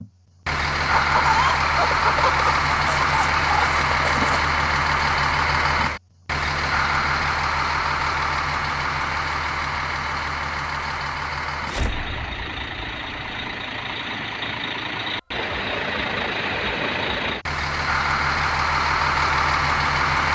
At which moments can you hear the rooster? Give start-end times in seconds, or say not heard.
0.9-4.5.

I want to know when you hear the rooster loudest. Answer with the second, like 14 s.
1 s.